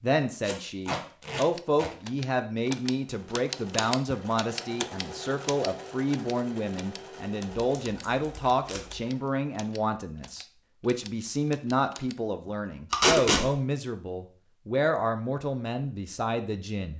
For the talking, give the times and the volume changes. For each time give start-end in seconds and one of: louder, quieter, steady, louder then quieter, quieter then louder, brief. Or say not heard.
0.0-16.9 steady.